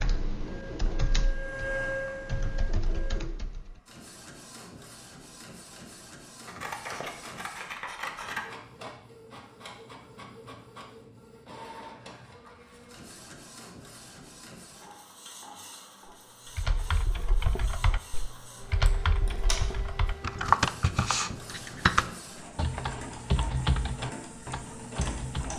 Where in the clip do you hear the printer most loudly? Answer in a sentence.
The loudest moment of the printer is at 2 seconds.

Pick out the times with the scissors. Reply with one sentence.
You can hear the scissors from 6.5 to 8.4 s and from 18.9 to 19.6 s.